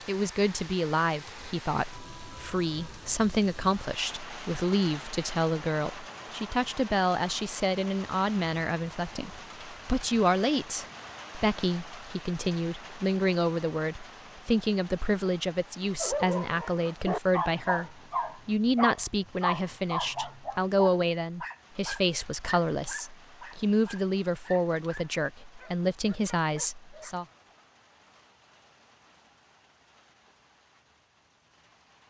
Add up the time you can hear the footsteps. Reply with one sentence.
You can't hear the footsteps here.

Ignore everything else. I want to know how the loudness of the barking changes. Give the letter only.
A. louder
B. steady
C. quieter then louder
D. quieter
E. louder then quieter
D.